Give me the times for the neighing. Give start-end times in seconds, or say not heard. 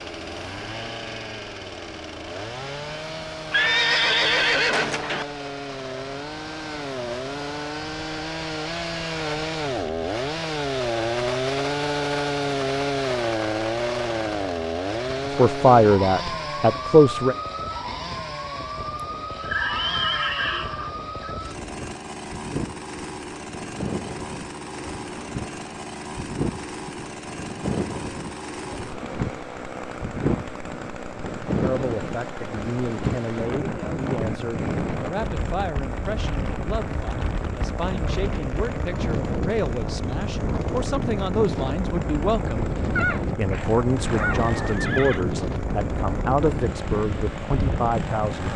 3.5-5.2, 19.4-21.3, 43.0-45.2.